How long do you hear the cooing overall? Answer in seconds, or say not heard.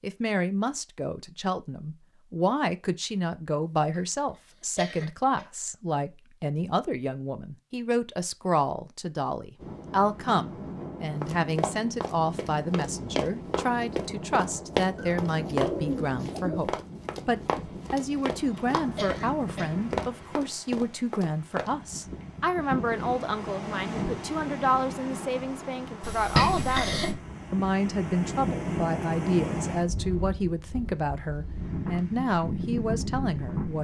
2 s.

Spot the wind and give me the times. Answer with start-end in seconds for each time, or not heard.
9.6-33.8.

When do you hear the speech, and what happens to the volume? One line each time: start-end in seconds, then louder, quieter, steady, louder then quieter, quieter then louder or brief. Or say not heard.
0.0-33.8 steady.